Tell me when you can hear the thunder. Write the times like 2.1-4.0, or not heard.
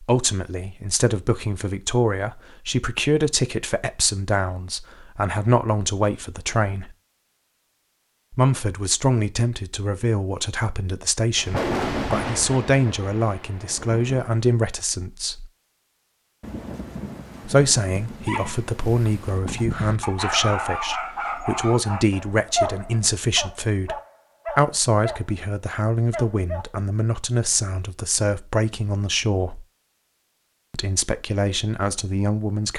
11.3-14.4, 16.4-19.4.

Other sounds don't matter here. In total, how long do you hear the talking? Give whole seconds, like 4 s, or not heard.
28 s.